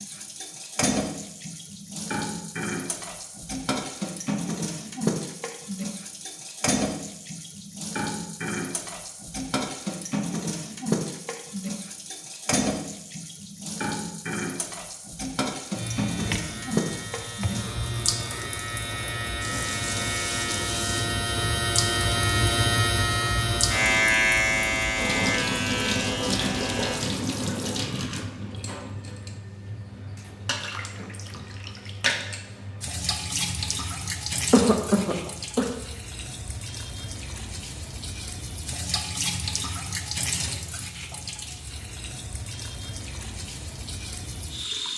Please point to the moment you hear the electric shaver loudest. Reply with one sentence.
The loudest moment of the electric shaver is at 24 seconds.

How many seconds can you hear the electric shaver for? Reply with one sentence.
You can hear the electric shaver for 11 seconds altogether.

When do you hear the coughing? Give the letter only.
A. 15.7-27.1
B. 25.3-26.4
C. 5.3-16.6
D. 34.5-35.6
D.